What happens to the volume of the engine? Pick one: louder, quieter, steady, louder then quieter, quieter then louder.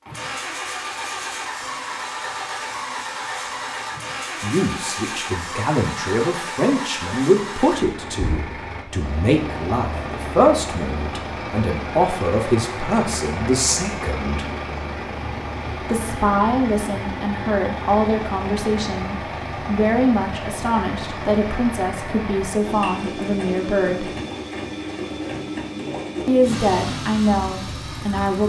steady.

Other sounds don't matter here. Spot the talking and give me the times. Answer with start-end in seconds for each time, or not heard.
4.4-14.5, 15.8-24.1, 26.2-28.4.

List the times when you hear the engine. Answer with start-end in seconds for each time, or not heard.
0.0-28.4.